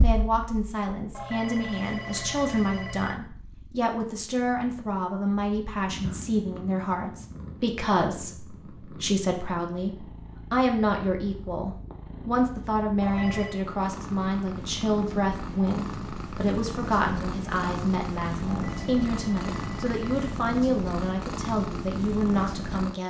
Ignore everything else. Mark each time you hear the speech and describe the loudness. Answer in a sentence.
You can hear the speech from 0.0 to 23.0 s, at a steady volume.